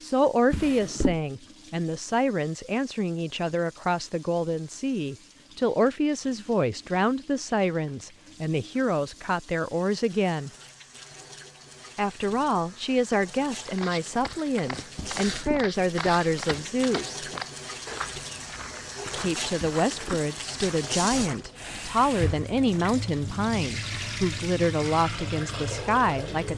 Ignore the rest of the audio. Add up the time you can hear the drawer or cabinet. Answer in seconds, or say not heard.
2 s.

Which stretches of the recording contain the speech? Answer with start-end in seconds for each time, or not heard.
0.0-10.5, 11.9-17.2, 19.1-26.5.